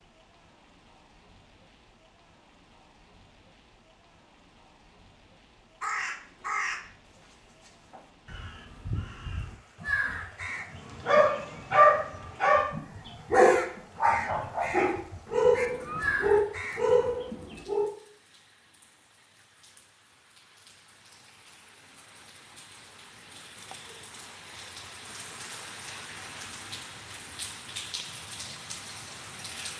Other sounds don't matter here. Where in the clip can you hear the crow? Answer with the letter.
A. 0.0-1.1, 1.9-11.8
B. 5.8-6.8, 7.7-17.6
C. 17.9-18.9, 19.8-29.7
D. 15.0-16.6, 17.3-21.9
B.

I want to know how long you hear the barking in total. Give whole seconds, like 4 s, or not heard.
6 s.